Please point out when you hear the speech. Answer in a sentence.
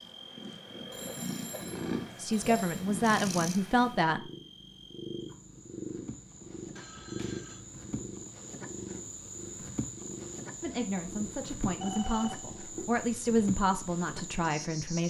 The speech can be heard from 2.2 to 4.2 s and from 10.6 to 15.0 s.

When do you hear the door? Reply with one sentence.
The door can't be heard in this clip.